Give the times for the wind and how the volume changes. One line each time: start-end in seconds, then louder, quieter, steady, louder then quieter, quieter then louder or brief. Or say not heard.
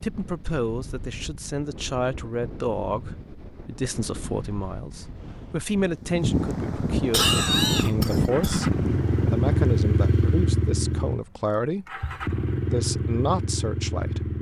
0.0-9.7 louder.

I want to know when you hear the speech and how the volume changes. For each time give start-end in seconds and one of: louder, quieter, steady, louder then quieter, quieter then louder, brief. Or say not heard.
0.0-14.3 steady.